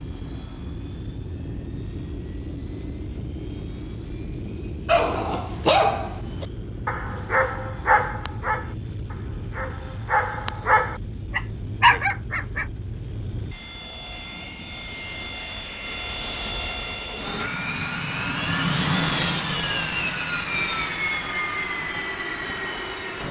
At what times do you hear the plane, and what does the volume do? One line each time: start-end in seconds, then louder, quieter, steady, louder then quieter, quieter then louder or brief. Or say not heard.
0.0-23.2 louder.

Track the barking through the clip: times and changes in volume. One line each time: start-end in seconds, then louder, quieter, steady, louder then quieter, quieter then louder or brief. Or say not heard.
4.8-12.7 quieter then louder.